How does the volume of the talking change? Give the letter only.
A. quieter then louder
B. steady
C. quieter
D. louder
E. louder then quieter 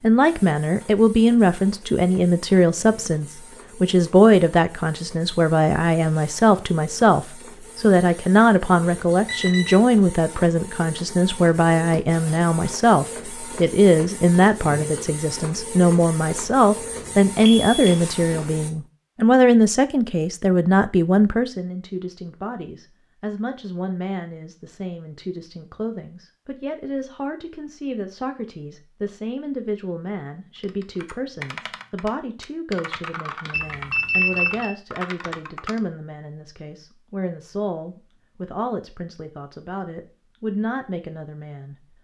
C.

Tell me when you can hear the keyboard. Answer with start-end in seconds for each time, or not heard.
30.6-35.8.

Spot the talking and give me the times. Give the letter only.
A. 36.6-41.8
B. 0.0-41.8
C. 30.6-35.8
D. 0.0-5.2
B.